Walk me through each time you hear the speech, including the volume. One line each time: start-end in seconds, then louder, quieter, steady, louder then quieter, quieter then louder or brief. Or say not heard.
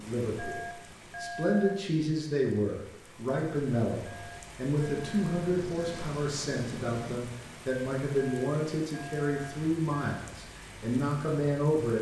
0.0-11.9 steady.